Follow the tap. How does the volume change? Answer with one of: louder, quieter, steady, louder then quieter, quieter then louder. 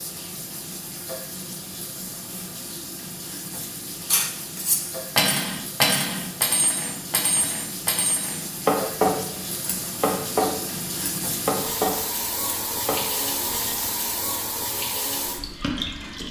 louder.